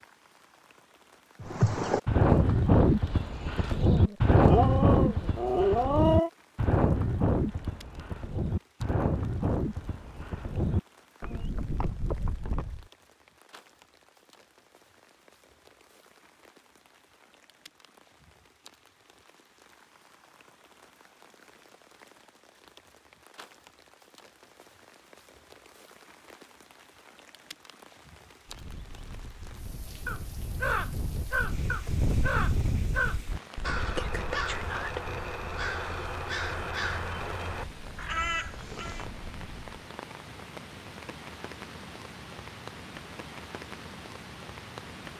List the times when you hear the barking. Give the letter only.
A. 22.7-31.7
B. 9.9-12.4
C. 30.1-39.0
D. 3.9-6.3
D.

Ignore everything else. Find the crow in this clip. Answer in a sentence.
The crow can be heard from 30.1 to 39.0 s.